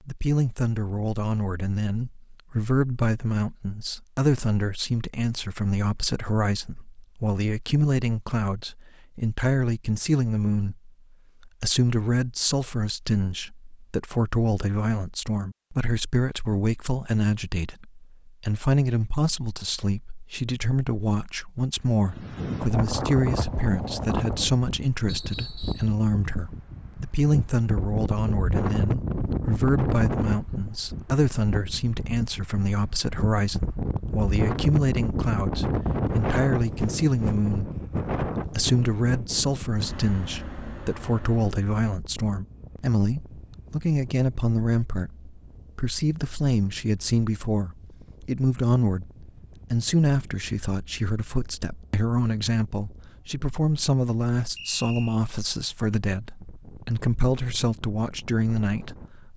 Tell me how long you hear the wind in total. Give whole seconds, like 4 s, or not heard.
37 s.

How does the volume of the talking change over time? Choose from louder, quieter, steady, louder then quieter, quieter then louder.
steady.